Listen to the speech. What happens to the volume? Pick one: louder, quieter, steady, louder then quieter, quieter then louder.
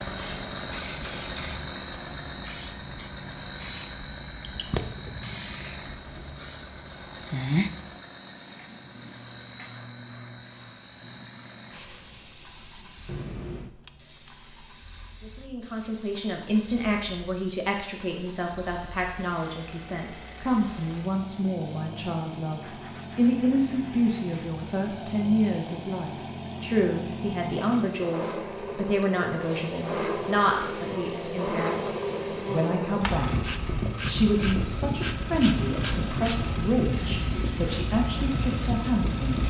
steady.